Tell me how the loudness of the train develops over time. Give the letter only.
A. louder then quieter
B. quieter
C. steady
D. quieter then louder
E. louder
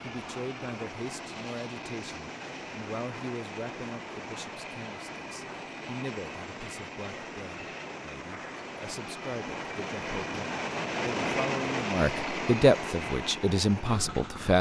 E.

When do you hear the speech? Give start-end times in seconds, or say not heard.
0.0-14.5.